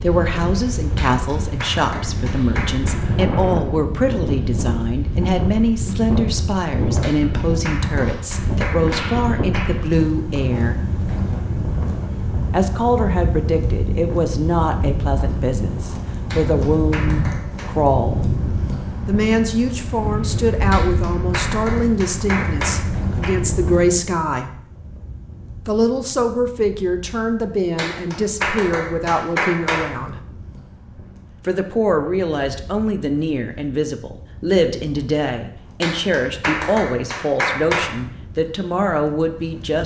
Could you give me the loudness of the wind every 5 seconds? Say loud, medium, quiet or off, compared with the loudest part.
loud, loud, loud, loud, loud, quiet, quiet, quiet.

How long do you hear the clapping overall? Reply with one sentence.
You can hear the clapping for 13 seconds altogether.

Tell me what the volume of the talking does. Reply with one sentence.
The volume of the talking stays about the same.